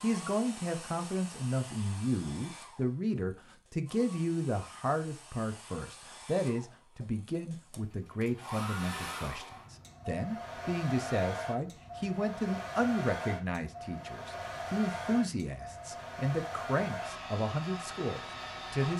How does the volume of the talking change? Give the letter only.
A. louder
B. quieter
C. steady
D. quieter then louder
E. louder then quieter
C.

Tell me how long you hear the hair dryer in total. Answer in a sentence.
You can hear the hair dryer for 19 seconds altogether.